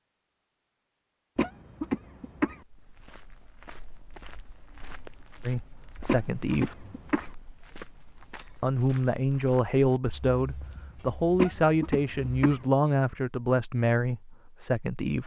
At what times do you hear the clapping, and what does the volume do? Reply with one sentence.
The clapping can't be heard in this clip.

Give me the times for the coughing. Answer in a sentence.
You can hear the coughing from 1.4 to 2.6 s, from 6.0 to 7.3 s and from 11.3 to 12.6 s.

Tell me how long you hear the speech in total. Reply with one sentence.
The speech can be heard for 8 seconds in total.